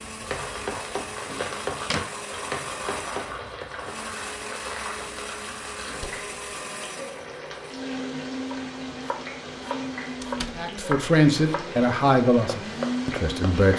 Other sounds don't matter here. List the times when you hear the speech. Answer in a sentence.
The speech can be heard from 10.6 to 13.7 s.